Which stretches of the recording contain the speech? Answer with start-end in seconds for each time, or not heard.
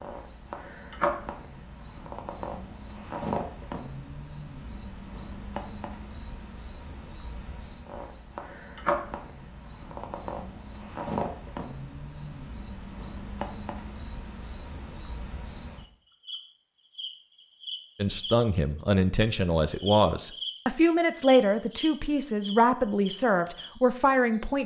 17.9-24.6.